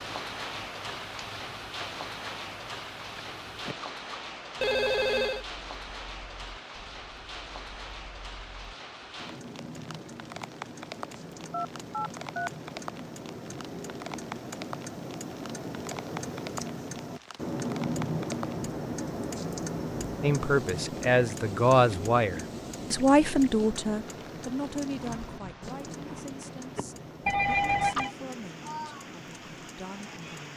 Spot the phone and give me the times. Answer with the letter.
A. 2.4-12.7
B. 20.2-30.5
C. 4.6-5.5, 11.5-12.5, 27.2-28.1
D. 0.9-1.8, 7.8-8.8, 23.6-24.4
C.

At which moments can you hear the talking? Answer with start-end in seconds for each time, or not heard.
20.2-30.5.